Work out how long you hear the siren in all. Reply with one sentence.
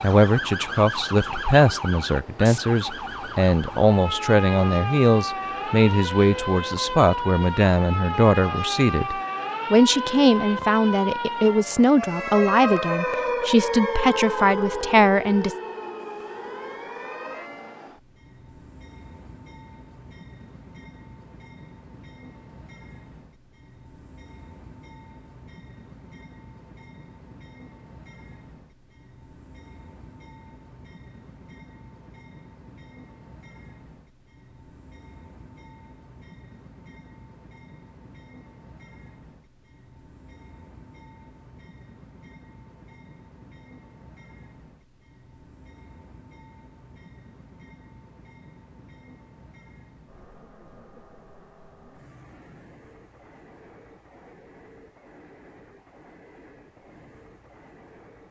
You can hear the siren for 18 seconds altogether.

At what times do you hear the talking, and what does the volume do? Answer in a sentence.
The talking can be heard from 0.0 to 15.6 s, at a steady volume.